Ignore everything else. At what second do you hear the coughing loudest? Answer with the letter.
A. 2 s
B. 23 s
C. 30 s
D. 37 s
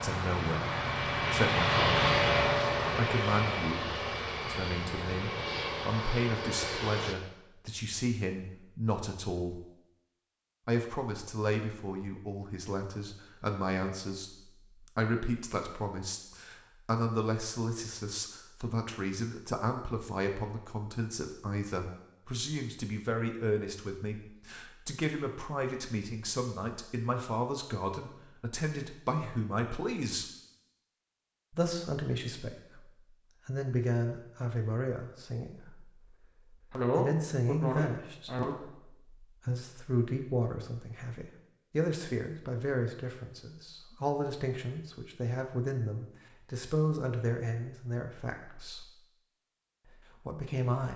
D.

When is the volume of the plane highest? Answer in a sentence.
The volume of the plane peaks at 2 seconds.